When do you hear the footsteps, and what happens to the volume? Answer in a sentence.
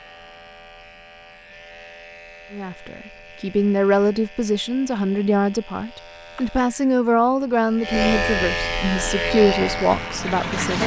The footsteps can't be heard in this clip.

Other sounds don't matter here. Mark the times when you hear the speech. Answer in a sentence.
The speech can be heard from 2.5 to 10.8 s.